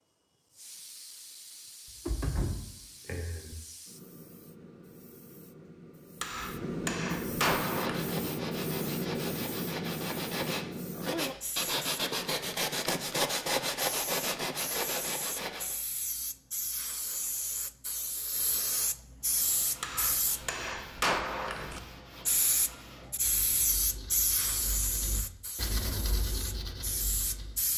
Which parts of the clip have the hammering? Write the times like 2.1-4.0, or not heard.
6.2-8.1, 19.8-21.8.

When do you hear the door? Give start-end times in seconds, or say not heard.
2.0-3.5.